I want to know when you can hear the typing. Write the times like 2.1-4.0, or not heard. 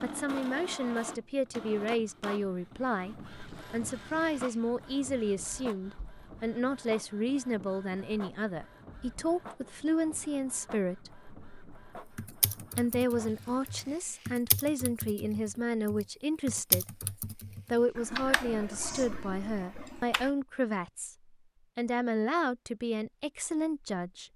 12.2-20.3.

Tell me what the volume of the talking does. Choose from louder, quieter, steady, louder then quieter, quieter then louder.
steady.